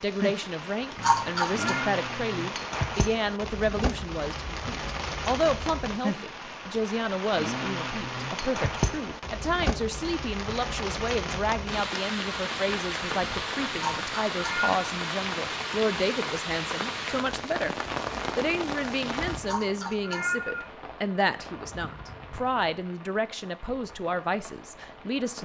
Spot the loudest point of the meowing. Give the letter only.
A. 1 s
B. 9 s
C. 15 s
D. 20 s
A.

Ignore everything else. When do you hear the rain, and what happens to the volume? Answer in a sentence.
You can hear the rain from 0.0 to 25.4 s, getting quieter.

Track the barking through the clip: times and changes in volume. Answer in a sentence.
The barking can't be heard in this clip.